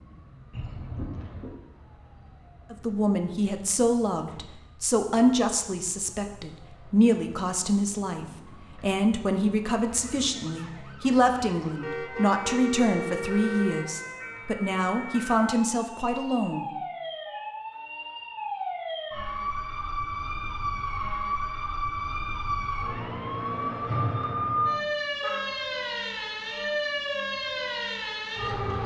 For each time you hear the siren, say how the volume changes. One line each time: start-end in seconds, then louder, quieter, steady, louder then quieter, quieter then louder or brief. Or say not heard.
0.0-28.8 louder.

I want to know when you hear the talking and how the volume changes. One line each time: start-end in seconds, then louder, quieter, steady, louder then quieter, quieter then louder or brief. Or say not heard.
2.7-16.7 steady.